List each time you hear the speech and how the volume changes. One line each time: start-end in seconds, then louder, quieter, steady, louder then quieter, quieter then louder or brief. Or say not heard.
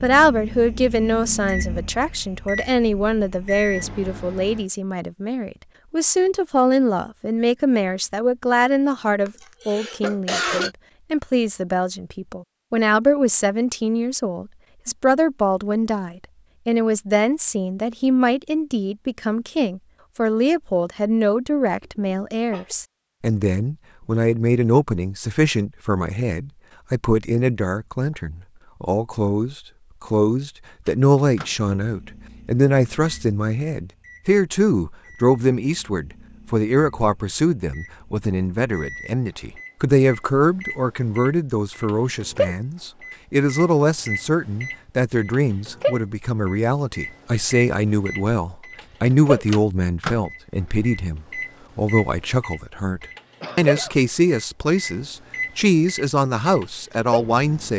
0.0-57.7 steady.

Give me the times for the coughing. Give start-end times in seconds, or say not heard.
9.2-10.7, 21.8-22.8, 53.4-54.0.